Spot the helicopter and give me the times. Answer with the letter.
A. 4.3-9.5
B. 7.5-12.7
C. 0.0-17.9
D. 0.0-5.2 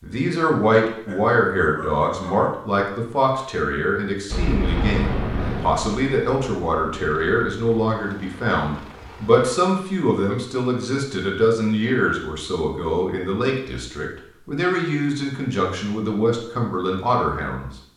A.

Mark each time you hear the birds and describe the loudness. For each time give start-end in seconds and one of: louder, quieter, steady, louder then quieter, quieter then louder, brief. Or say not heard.
not heard.